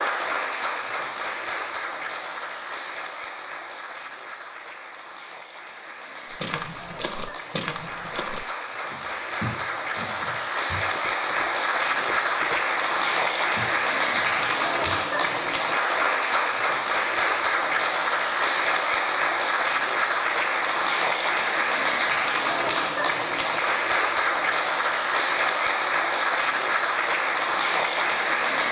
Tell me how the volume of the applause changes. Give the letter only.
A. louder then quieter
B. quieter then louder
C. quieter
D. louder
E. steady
D.